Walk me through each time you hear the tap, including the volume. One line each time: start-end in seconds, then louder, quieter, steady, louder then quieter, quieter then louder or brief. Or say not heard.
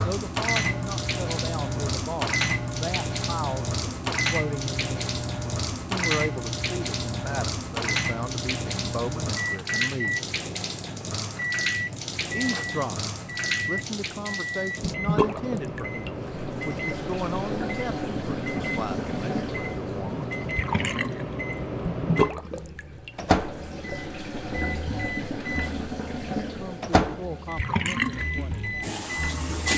0.0-29.7 steady.